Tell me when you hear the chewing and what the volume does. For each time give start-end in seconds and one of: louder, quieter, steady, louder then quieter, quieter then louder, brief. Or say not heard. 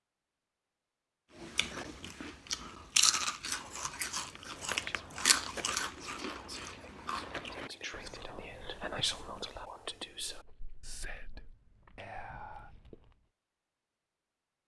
1.4-13.2 quieter.